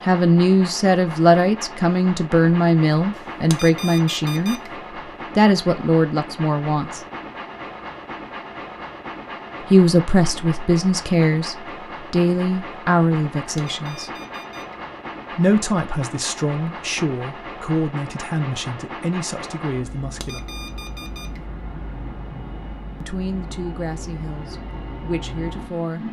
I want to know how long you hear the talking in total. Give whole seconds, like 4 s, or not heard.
19 s.